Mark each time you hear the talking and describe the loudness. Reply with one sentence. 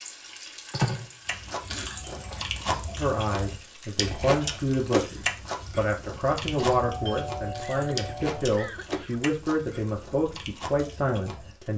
You can hear the talking from 3.0 to 11.7 s, at a steady volume.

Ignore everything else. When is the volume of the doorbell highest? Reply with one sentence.
The volume of the doorbell peaks at 1 second.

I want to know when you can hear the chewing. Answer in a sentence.
The chewing can be heard from 1.2 to 11.7 s.